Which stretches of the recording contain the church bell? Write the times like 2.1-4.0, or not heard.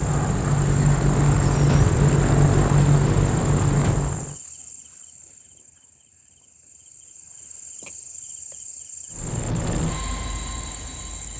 not heard.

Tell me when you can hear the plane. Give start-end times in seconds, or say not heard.
0.0-4.3, 9.2-11.3.